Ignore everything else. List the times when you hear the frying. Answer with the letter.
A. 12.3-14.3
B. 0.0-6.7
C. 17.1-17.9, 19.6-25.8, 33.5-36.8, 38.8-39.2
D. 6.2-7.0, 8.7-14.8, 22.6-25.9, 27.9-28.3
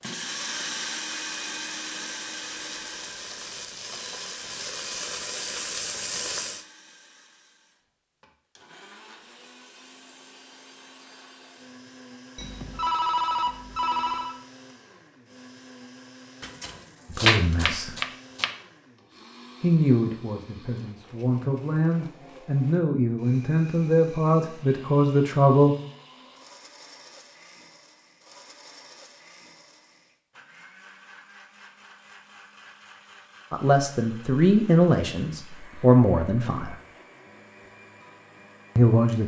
B.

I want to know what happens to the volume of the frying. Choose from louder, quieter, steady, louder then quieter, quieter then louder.
louder.